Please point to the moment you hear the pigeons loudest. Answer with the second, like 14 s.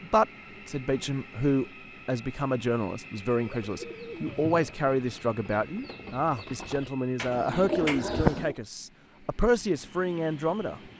8 s.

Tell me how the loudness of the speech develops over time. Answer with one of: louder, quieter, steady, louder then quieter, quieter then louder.
steady.